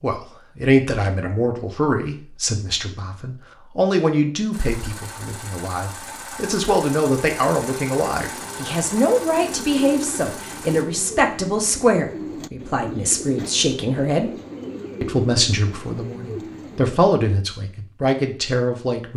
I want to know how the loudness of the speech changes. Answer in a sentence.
The loudness of the speech stays about the same.